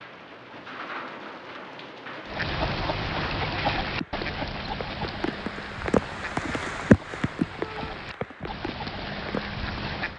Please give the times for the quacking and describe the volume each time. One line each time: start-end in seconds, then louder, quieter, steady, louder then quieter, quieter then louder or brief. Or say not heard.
2.2-10.1 quieter then louder.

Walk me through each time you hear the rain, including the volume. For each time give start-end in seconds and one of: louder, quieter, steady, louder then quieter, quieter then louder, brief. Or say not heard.
0.0-10.1 louder then quieter.